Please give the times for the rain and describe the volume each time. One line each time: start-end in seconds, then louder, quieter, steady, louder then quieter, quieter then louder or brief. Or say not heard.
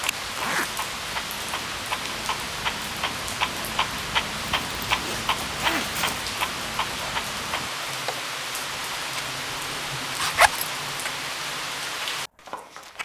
0.0-12.9 steady.